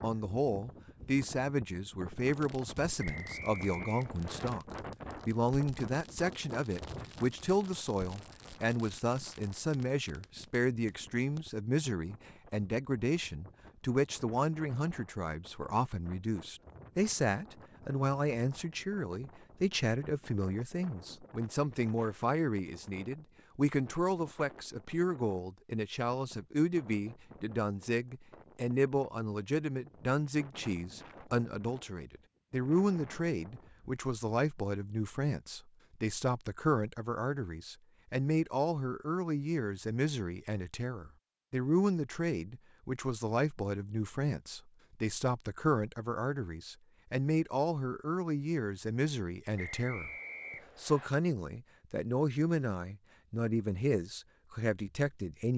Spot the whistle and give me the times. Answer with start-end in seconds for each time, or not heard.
3.0-4.5, 49.5-51.1.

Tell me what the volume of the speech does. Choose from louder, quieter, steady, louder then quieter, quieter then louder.
steady.